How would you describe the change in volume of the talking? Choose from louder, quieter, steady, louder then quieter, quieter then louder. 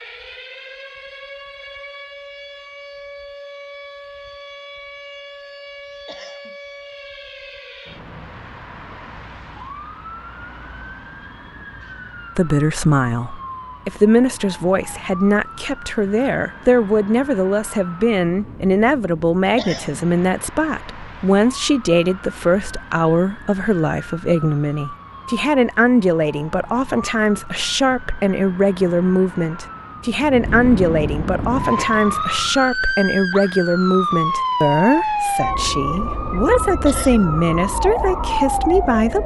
steady.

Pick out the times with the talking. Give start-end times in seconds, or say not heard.
12.3-39.2.